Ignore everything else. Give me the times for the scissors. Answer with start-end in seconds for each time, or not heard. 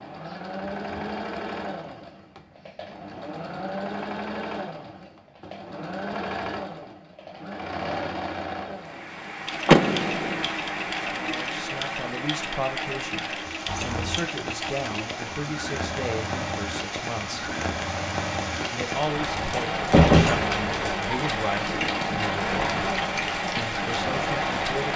13.7-14.3.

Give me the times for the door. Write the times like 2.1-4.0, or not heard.
9.7-10.4, 19.2-20.8.